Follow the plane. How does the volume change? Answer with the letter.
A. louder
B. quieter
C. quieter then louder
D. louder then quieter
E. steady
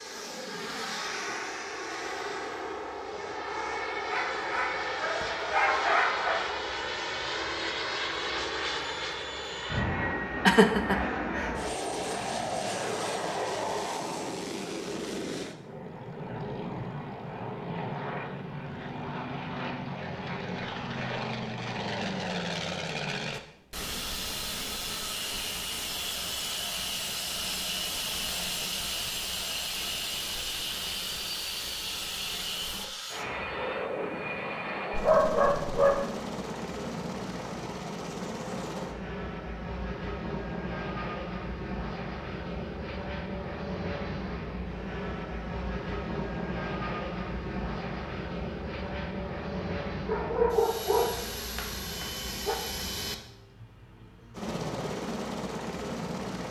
E.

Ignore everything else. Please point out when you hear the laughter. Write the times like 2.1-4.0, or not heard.
10.4-11.6.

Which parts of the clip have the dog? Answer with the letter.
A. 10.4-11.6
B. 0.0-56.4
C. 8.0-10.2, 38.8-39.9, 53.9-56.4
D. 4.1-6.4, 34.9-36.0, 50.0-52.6
D.